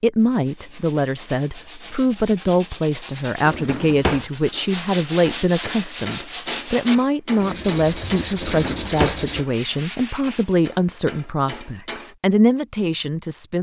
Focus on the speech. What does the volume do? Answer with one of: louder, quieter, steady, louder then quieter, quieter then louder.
steady.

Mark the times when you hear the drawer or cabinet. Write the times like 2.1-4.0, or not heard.
3.5-4.2, 8.4-9.2.